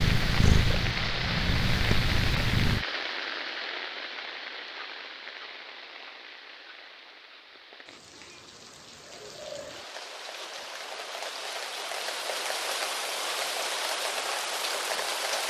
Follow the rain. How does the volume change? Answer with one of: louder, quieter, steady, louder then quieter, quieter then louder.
quieter then louder.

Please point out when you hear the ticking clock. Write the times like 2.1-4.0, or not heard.
not heard.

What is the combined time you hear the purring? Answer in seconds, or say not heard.
3 s.